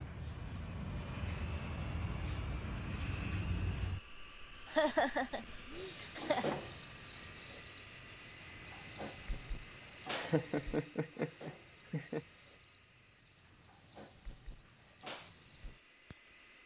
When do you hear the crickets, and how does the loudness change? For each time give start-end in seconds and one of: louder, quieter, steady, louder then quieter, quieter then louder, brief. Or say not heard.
0.0-16.5 louder then quieter.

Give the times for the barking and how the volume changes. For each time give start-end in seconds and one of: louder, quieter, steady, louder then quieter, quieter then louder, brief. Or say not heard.
not heard.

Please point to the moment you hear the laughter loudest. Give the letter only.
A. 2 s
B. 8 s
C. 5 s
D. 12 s
C.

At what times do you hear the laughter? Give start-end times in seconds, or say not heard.
4.7-6.5, 10.1-12.2.